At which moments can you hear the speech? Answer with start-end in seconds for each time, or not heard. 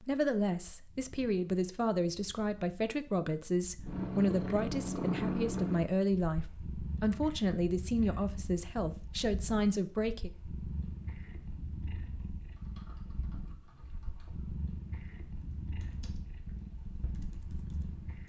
0.0-10.3.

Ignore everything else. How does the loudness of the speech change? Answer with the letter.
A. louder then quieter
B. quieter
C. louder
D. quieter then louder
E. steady
E.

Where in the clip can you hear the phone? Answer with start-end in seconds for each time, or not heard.
not heard.